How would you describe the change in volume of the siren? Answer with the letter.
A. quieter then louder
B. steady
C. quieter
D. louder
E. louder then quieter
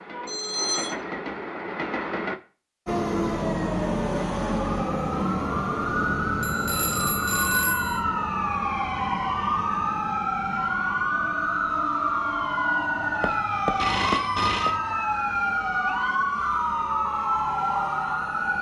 B.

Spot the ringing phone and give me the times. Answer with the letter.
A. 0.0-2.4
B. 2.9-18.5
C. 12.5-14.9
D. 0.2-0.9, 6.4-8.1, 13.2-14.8
D.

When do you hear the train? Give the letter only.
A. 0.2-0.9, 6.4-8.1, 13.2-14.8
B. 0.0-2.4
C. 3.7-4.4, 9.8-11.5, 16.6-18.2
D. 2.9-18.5
B.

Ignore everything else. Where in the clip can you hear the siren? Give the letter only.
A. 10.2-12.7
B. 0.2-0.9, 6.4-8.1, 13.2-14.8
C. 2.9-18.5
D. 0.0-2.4
C.